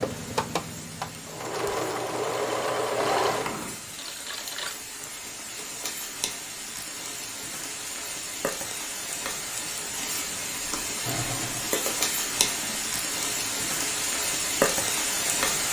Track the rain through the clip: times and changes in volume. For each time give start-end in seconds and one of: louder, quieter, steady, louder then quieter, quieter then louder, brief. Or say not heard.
0.0-15.6 louder.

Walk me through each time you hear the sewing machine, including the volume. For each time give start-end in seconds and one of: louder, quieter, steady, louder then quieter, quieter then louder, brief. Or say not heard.
0.0-4.8 louder then quieter
11.0-12.8 brief.